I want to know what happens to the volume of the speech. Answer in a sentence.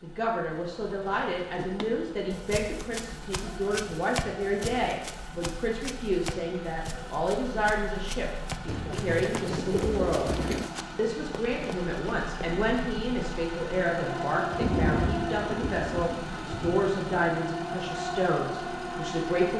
The loudness of the speech stays about the same.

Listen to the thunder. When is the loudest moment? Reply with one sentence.
The loudest moment of the thunder is at 15 seconds.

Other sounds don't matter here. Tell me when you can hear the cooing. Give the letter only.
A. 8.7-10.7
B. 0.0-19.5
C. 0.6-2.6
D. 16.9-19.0
A.